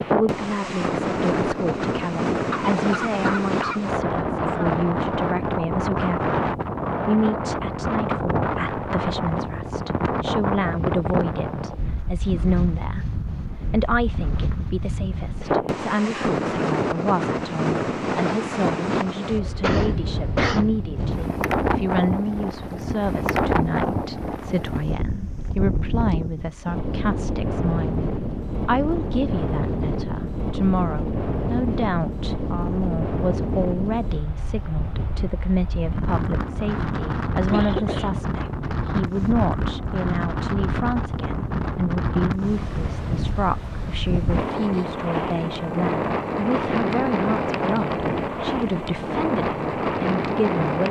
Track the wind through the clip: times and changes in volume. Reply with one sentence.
You can hear the wind from 0.0 to 50.8 s, at a steady volume.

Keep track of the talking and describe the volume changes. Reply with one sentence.
The loudness of the talking stays about the same.